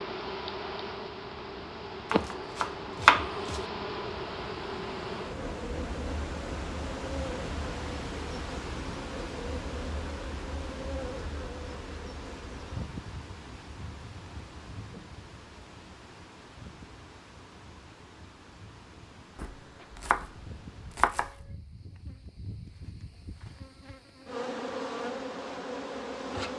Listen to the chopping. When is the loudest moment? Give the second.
3 s.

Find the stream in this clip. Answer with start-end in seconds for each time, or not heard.
0.0-21.1.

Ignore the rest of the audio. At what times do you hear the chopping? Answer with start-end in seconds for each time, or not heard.
2.1-3.6, 19.4-21.5.